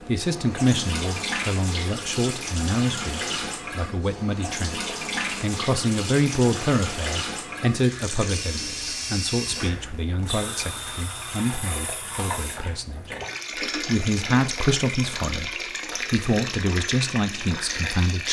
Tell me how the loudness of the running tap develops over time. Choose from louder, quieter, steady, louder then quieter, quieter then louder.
steady.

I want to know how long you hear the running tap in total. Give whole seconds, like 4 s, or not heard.
18 s.